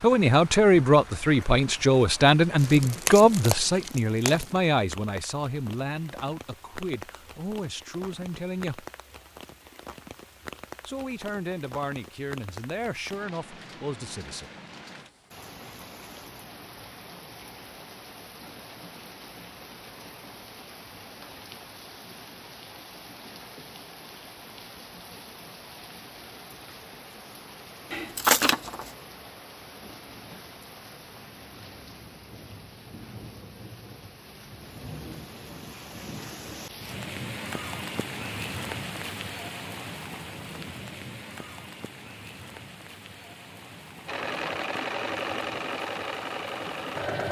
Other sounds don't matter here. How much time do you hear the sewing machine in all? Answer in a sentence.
The sewing machine can be heard for 3 seconds in total.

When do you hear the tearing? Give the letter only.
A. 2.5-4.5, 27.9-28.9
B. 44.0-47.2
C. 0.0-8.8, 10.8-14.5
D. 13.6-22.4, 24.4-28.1
A.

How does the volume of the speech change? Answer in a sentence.
The loudness of the speech goes down.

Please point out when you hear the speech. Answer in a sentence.
The speech can be heard from 0.0 to 8.8 s and from 10.8 to 14.5 s.